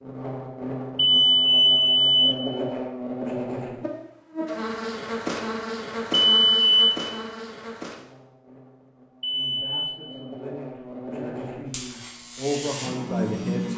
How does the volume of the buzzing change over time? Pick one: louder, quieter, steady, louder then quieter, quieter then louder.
quieter then louder.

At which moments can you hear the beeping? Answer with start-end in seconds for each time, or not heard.
0.9-2.4, 6.2-7.0, 9.2-10.1.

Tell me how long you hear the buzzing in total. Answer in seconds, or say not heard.
14 s.